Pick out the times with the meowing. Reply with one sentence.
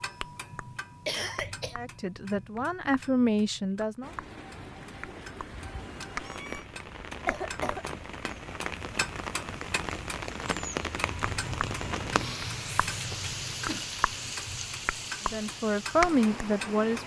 The meowing can be heard from 5.8 to 6.7 s and from 11.8 to 12.5 s.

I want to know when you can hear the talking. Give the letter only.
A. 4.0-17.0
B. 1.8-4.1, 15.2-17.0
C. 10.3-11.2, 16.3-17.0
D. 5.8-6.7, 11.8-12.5
B.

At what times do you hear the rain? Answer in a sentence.
The rain can be heard from 4.0 to 17.0 s.